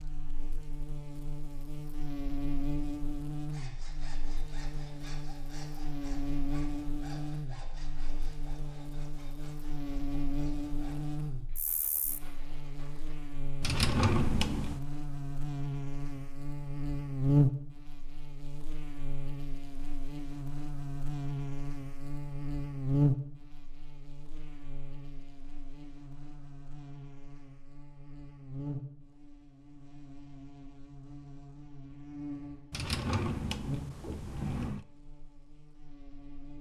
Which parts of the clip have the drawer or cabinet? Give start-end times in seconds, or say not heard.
13.6-14.8, 32.7-34.9.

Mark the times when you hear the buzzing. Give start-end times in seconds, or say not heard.
0.0-36.5.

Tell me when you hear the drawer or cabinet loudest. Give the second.
14 s.